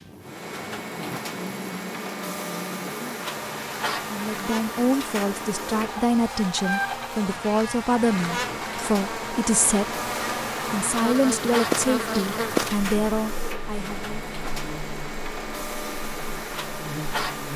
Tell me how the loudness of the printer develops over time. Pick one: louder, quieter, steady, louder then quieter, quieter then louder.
steady.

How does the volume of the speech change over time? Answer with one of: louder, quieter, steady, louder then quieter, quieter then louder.
steady.